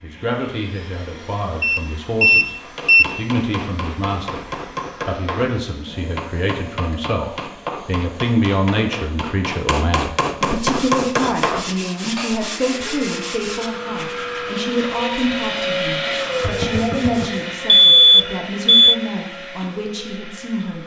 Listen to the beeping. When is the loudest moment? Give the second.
18 s.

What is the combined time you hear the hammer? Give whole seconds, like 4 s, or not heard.
10 s.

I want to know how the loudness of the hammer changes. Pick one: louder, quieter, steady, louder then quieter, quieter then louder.
louder.